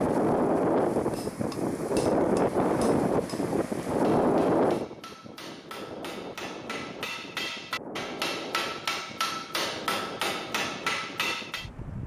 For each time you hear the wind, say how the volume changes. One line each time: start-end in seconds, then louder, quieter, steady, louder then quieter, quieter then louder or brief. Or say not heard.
0.0-12.0 quieter.